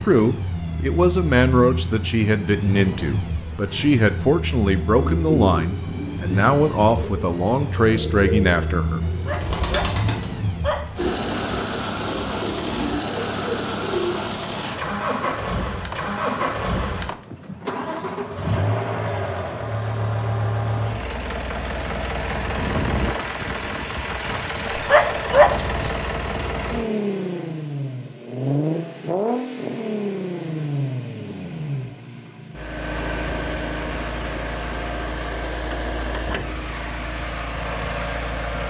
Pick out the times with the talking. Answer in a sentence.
You can hear the talking from 0.0 to 9.0 s.